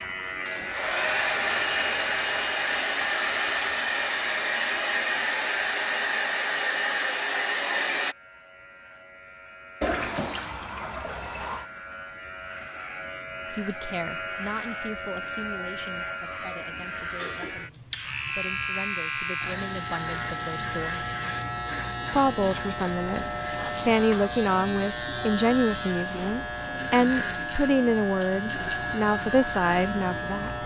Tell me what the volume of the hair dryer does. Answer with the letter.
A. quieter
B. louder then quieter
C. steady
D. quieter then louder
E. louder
C.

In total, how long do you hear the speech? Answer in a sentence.
You can hear the speech for 16 seconds altogether.